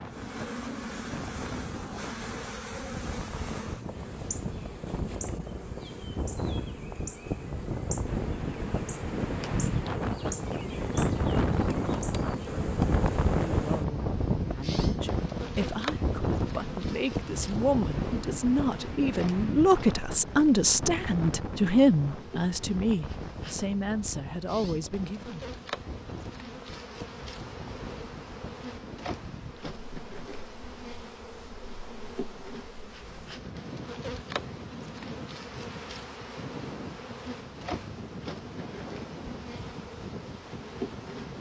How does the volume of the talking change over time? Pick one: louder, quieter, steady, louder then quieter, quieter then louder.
louder then quieter.